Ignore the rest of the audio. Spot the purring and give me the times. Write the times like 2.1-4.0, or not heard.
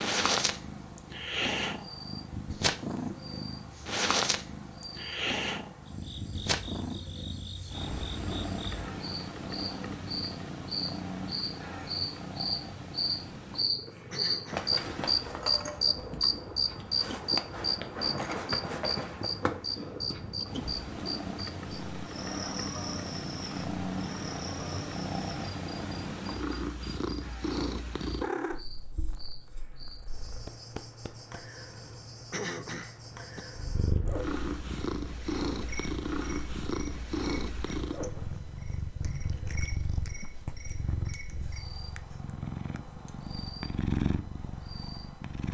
0.0-45.4.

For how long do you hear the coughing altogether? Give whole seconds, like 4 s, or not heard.
2 s.